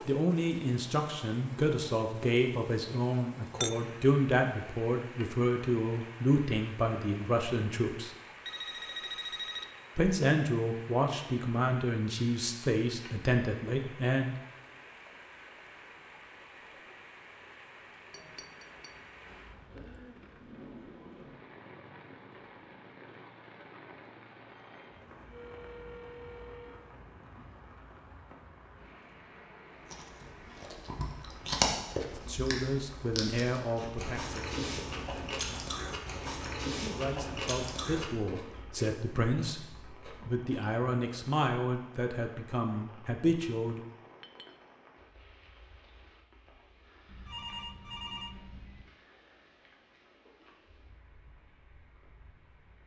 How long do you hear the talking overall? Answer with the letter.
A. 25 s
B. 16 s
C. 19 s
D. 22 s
D.